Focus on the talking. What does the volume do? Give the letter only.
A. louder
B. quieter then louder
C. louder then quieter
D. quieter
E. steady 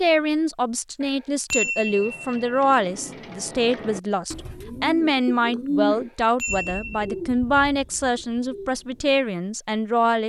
E.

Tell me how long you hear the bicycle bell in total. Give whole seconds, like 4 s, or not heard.
3 s.